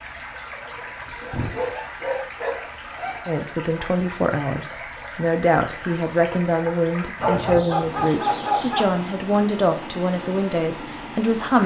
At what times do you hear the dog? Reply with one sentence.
The dog can be heard from 0.8 to 3.4 s and from 7.2 to 8.9 s.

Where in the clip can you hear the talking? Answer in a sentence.
The talking can be heard from 3.2 to 11.6 s.